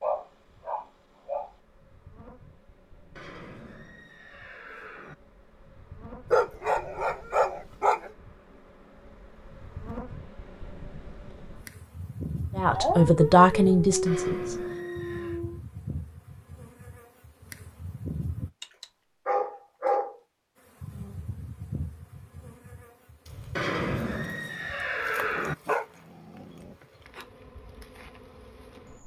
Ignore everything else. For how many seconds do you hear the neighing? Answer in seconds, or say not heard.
5 s.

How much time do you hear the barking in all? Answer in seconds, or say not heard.
9 s.